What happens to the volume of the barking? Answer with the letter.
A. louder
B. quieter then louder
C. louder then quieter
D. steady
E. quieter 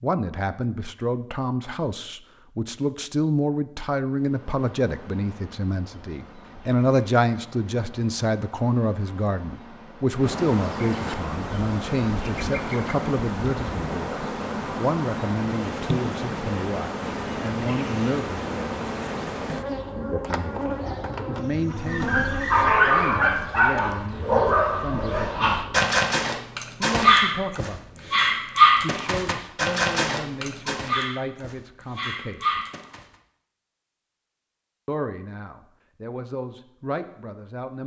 E.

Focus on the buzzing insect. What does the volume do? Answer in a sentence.
The volume of the buzzing insect goes up.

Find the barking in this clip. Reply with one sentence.
You can hear the barking from 21.8 to 33.0 s.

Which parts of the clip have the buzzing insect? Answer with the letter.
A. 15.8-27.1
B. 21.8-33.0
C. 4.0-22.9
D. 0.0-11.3
C.